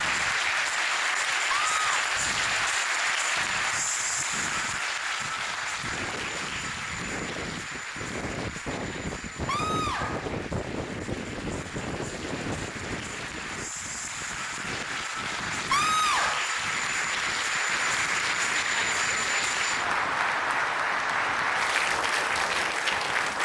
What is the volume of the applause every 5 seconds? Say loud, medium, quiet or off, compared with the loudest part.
loud, medium, medium, loud, loud.